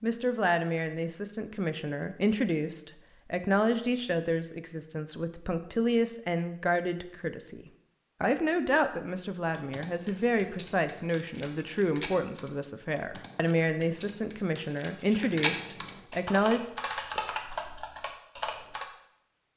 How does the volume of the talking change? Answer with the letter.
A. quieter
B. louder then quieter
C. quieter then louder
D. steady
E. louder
D.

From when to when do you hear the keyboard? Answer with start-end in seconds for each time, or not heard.
9.5-18.9.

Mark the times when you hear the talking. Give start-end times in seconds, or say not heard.
0.0-16.6.